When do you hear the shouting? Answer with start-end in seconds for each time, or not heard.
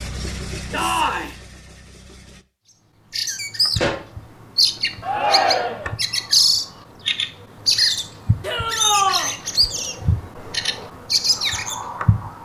0.7-1.4, 5.0-6.0, 8.4-9.3.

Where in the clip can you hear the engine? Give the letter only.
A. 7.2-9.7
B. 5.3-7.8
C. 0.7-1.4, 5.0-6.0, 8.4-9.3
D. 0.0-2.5
D.